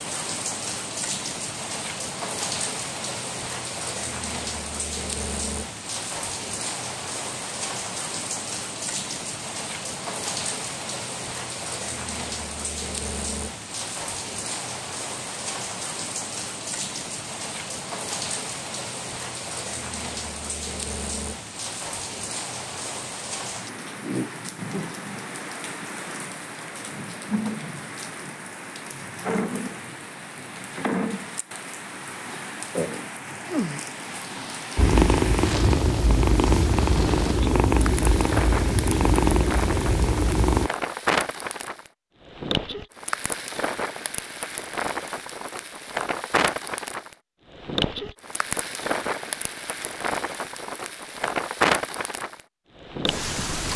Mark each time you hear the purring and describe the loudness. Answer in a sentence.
You can hear the purring from 34.8 to 40.7 s, at a steady volume.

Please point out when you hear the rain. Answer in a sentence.
You can hear the rain from 0.0 to 53.7 s.